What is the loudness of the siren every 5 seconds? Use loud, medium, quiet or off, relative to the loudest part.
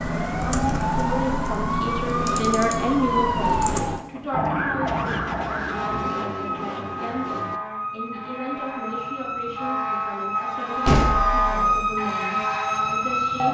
loud, medium, loud.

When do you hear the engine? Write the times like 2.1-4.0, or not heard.
2.0-7.6.